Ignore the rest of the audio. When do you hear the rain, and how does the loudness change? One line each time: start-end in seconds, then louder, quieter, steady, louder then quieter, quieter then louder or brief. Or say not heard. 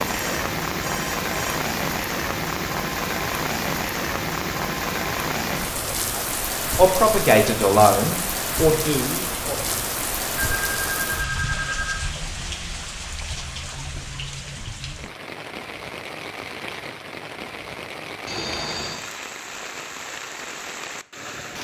0.0-21.5 quieter.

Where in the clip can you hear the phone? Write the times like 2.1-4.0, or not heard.
0.1-1.6, 10.3-11.9, 18.2-19.0.